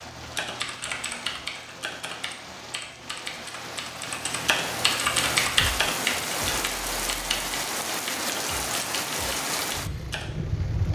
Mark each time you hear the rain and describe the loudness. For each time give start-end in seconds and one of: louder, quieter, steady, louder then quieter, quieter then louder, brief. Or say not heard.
0.0-10.9 louder.